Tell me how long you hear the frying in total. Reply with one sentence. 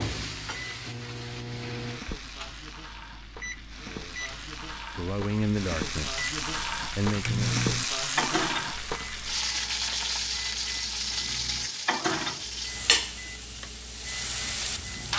The frying can be heard for 15 seconds in total.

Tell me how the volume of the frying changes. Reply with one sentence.
The volume of the frying goes up.